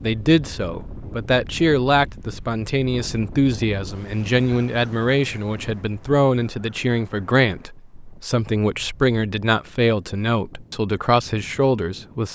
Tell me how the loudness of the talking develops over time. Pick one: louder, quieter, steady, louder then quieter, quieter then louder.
steady.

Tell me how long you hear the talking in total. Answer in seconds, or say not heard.
12 s.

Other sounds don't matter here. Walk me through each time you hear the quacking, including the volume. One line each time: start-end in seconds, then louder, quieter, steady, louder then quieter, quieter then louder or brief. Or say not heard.
not heard.